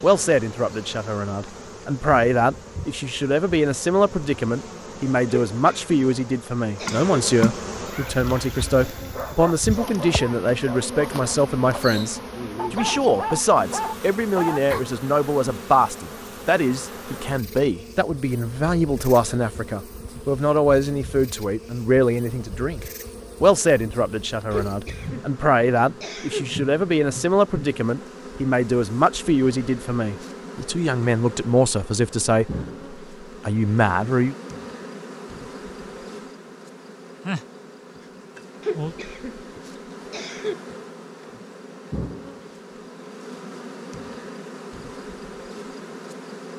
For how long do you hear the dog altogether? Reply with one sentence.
You can hear the dog for 7 seconds altogether.